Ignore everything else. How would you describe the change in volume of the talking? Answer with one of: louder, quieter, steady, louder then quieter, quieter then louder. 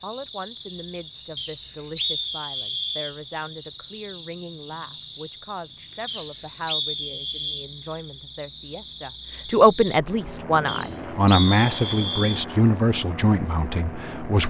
louder.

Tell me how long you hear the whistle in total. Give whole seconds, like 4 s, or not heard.
5 s.